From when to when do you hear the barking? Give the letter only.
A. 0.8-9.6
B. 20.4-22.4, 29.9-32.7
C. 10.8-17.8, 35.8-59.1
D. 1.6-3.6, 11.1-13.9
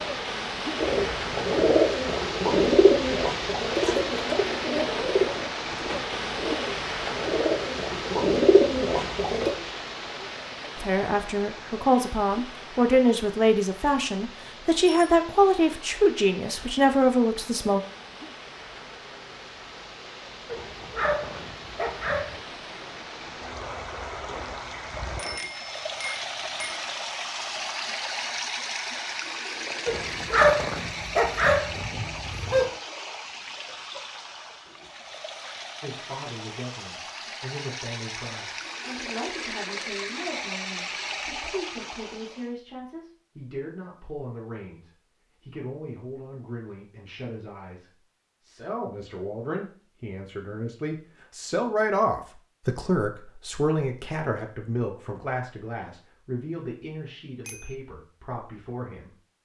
B.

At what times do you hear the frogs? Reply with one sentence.
You can't hear the frogs here.